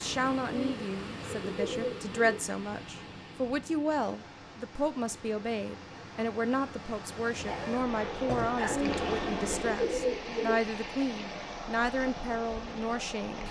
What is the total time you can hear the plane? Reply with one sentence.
The plane can be heard for 2 seconds in total.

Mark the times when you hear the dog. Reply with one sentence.
The dog can be heard from 7.5 to 8.9 s.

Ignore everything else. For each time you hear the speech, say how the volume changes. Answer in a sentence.
You can hear the speech from 0.0 to 13.4 s, at a steady volume.